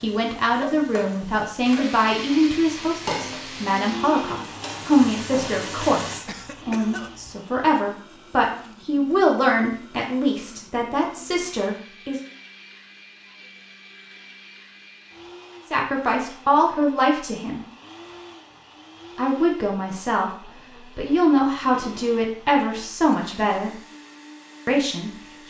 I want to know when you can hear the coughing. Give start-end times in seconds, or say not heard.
6.2-7.4.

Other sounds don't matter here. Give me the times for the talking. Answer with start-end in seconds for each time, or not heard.
0.0-12.2, 15.7-17.6, 19.1-23.7, 24.6-25.4.